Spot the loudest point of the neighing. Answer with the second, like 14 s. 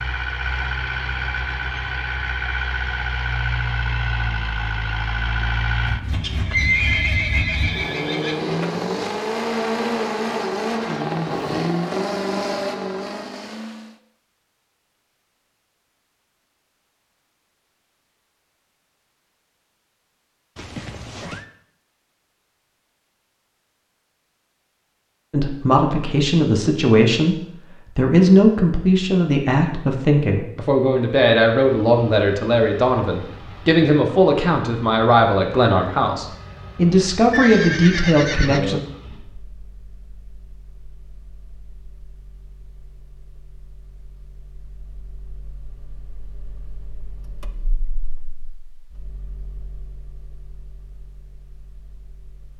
7 s.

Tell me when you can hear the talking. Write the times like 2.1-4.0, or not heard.
25.3-38.8.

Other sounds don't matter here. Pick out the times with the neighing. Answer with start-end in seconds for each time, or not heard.
6.1-8.4, 20.6-21.4, 37.3-38.9.